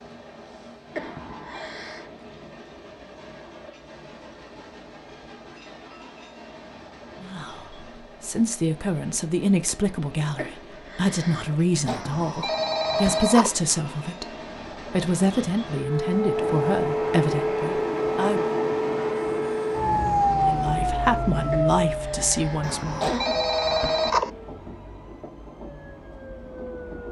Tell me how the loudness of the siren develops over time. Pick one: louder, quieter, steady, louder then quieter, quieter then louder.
quieter.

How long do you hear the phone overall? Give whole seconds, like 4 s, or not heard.
4 s.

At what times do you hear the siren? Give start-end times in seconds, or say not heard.
15.7-27.0.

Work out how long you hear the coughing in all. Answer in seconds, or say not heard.
5 s.